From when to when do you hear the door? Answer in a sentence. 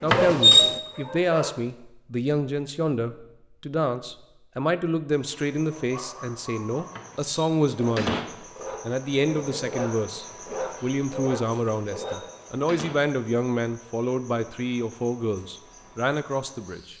You can hear the door from 0.1 to 0.8 s, from 7.0 to 8.3 s and from 11.7 to 13.0 s.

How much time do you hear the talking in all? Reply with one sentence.
You can hear the talking for 16 seconds altogether.